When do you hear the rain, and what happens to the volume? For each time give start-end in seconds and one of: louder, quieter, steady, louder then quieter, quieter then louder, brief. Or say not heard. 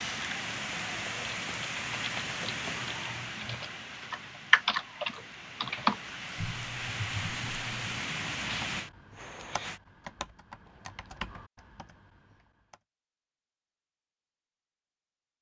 0.0-9.8 quieter then louder.